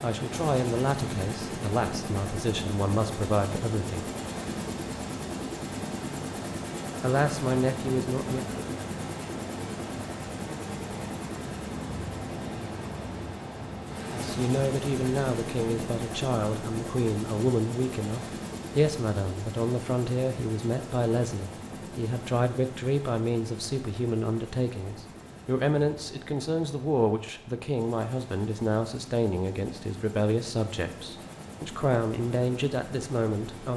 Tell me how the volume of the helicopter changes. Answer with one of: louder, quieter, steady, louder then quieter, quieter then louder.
quieter.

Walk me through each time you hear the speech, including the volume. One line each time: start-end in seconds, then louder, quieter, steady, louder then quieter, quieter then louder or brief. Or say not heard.
0.0-4.1 quieter then louder
7.0-8.4 brief
14.1-33.7 steady.